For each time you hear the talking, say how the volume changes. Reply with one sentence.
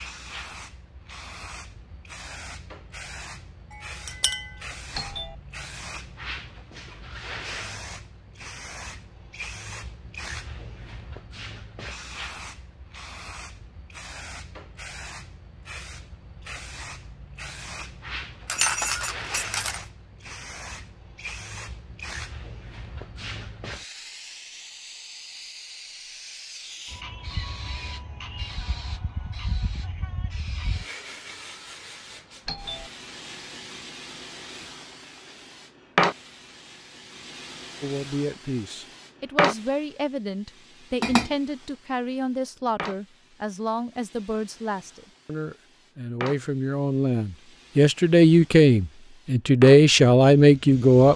You can hear the talking from 37.8 to 51.1 s, getting louder.